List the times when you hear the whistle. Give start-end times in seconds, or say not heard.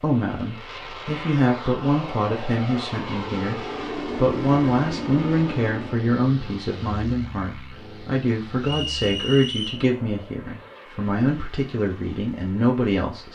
8.6-9.8.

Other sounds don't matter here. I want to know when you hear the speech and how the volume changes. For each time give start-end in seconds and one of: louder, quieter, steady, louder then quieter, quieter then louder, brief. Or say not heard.
0.0-13.3 steady.